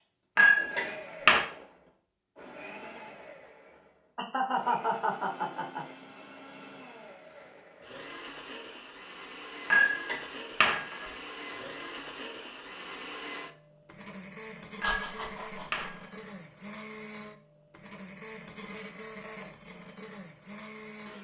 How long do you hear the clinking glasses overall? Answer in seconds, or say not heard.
4 s.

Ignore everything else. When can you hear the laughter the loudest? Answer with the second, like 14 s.
5 s.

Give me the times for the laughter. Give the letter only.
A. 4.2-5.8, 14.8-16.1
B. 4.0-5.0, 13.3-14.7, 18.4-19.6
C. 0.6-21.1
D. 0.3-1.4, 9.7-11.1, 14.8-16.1
A.